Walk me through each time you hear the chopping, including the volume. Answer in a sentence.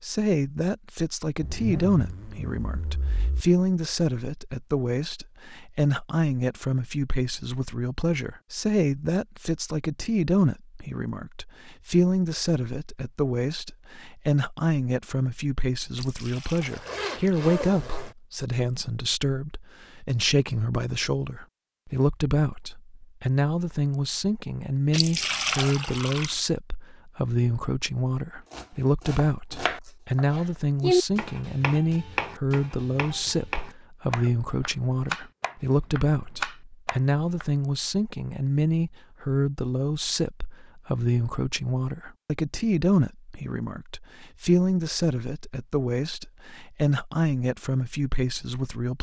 The chopping can be heard from 28.5 to 37.5 s, getting louder then quieter.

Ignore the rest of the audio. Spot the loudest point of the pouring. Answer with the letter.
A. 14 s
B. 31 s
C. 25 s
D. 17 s
C.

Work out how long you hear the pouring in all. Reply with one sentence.
You can hear the pouring for 3 seconds altogether.